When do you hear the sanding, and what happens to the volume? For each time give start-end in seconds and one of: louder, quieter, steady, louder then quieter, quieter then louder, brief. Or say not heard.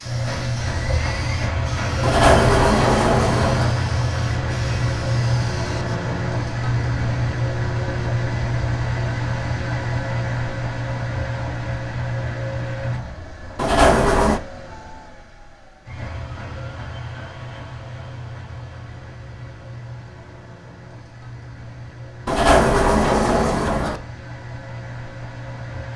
not heard.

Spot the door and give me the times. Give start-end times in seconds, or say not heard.
2.0-3.8, 13.6-14.4, 22.2-24.0.